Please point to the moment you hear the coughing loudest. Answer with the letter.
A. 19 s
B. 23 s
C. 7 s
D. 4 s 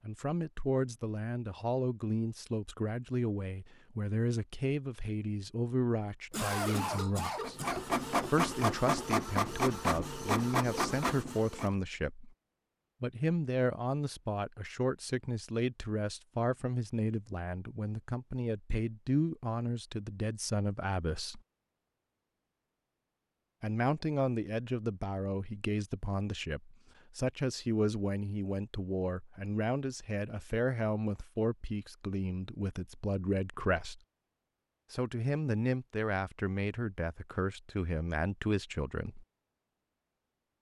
C.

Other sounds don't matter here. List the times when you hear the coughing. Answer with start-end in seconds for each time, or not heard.
6.3-7.9.